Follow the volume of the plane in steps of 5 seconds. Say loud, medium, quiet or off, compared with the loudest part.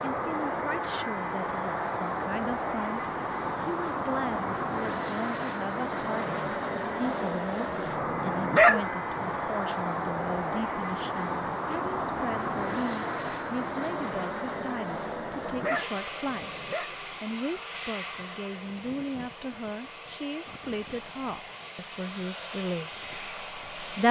loud, loud, loud, medium, medium.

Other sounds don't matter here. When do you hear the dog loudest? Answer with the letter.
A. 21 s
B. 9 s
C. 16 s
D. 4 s
B.